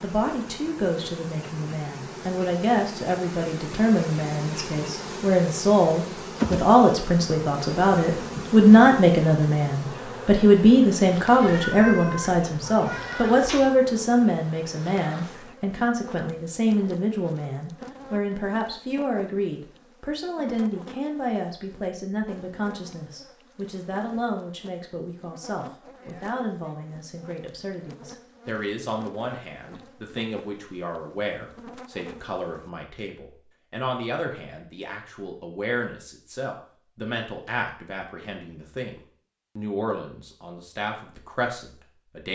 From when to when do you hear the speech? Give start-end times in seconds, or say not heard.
0.0-42.2.